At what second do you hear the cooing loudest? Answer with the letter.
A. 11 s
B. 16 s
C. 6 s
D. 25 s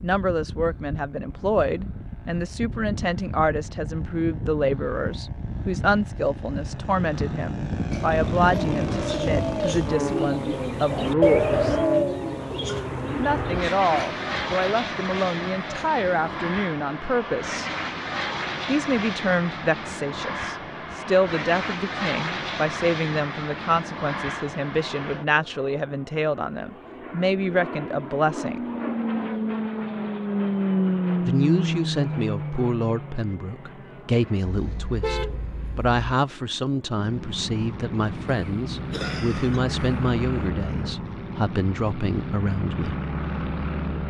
A.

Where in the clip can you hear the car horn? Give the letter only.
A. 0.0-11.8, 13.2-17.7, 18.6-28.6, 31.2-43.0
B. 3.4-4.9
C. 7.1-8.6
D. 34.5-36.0
D.